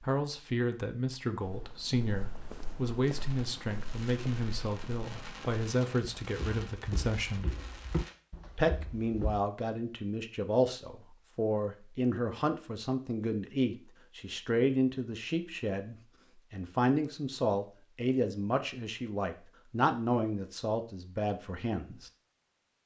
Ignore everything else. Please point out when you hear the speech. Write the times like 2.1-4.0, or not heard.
0.0-7.5, 8.6-22.1.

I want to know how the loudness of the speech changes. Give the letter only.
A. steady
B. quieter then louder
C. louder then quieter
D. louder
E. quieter
A.